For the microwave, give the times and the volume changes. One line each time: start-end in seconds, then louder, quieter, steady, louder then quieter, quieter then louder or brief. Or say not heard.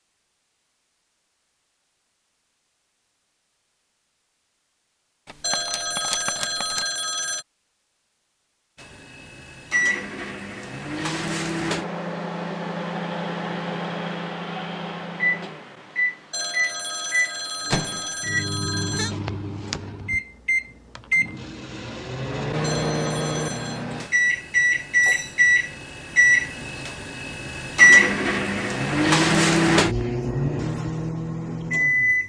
8.8-32.2 louder.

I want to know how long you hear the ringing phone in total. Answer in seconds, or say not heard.
6 s.